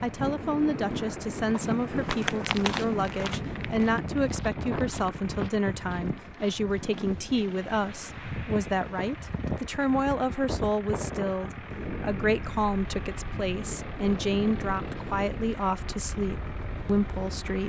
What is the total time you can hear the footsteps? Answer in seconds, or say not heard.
6 s.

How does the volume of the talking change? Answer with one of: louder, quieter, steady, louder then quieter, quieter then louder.
steady.